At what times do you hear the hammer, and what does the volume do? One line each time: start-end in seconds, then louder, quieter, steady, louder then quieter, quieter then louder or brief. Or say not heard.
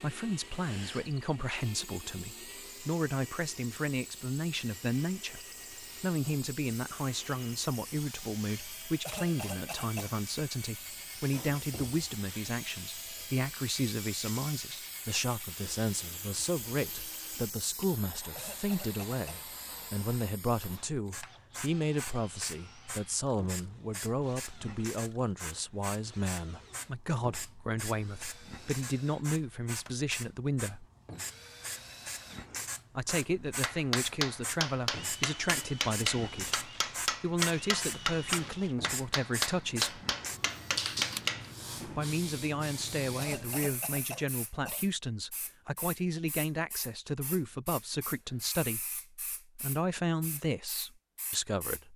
33.6-42.0 steady.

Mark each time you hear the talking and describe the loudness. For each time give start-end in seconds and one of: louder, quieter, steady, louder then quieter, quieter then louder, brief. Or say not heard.
0.0-30.9 steady
33.0-40.0 steady
41.9-51.9 steady.